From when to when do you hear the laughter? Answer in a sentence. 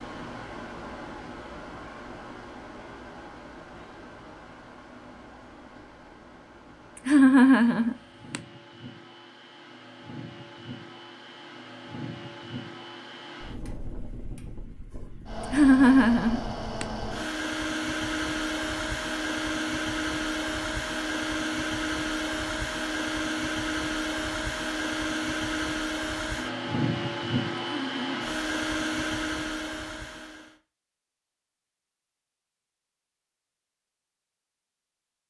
You can hear the laughter from 7.0 to 8.4 s, from 15.5 to 16.9 s and from 27.7 to 28.4 s.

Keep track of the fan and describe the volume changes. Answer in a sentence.
The volume of the fan goes up.